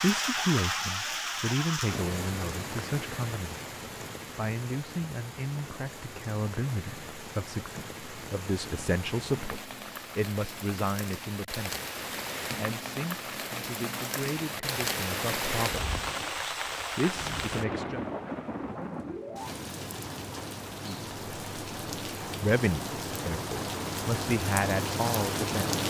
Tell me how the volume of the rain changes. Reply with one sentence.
The volume of the rain goes down, then up.